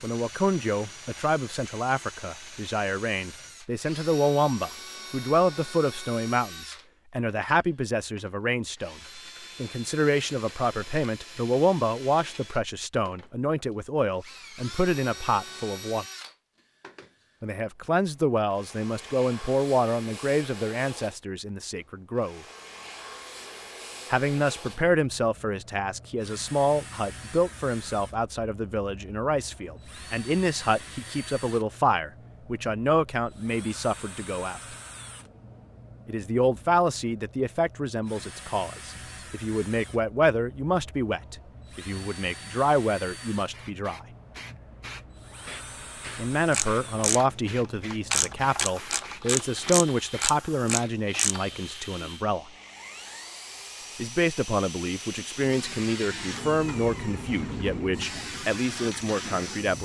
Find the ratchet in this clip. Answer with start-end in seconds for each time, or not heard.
46.5-47.2, 47.9-51.4.